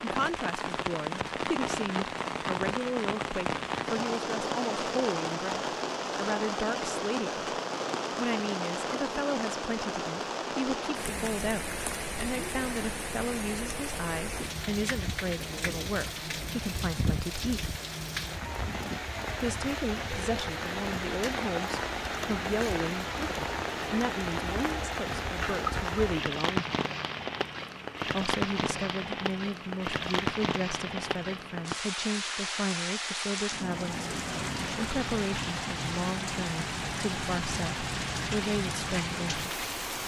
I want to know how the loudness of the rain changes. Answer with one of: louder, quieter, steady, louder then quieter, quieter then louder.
steady.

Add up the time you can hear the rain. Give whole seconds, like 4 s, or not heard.
40 s.